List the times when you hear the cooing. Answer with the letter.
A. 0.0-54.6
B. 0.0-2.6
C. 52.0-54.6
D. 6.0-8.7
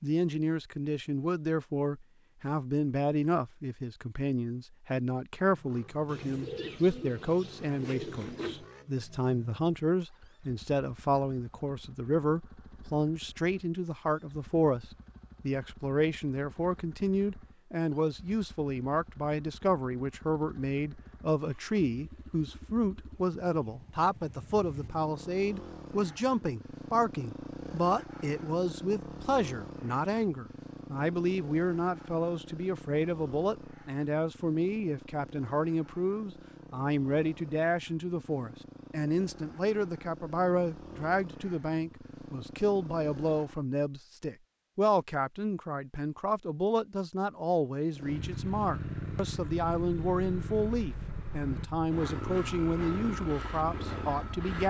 D.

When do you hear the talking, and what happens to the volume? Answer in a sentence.
The talking can be heard from 0.0 to 54.6 s, at a steady volume.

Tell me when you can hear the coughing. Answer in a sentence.
The coughing can't be heard in this clip.